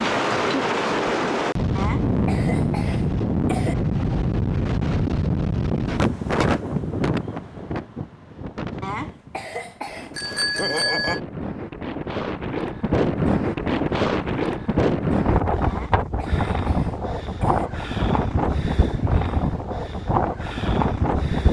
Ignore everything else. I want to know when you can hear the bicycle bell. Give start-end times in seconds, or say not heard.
10.2-11.2.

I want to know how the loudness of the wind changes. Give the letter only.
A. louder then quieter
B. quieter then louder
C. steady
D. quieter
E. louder
B.